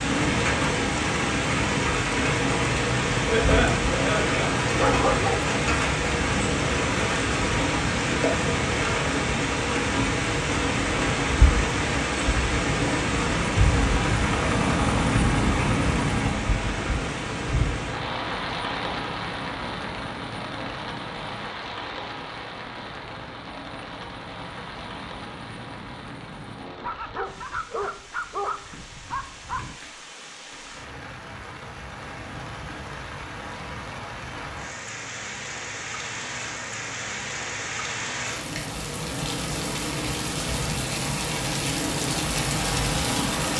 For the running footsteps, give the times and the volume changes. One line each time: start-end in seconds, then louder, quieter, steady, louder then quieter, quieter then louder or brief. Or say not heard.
not heard.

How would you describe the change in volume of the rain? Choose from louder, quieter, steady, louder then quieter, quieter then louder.
quieter then louder.